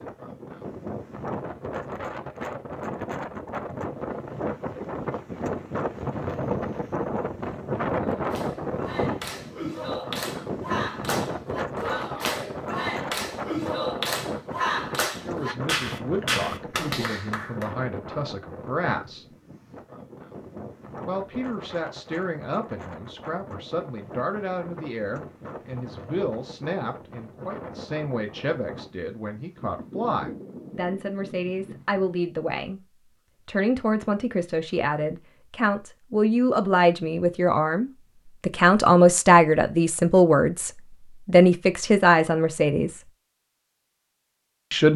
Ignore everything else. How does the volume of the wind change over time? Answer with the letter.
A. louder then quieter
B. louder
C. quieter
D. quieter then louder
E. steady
C.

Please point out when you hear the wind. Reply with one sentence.
You can hear the wind from 0.0 to 32.2 s.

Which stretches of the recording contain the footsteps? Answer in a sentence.
You can't hear the footsteps here.